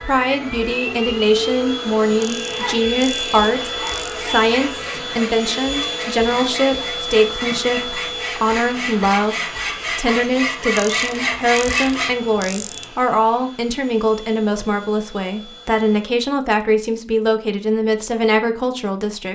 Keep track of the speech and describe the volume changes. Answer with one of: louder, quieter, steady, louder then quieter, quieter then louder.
steady.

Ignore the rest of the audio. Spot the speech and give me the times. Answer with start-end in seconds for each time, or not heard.
0.0-19.3.